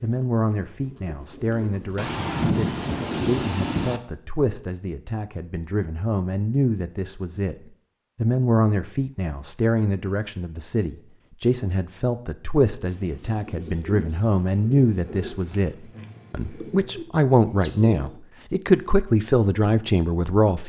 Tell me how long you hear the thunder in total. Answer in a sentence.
The thunder can be heard for 2 seconds in total.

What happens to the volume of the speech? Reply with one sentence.
The loudness of the speech goes up.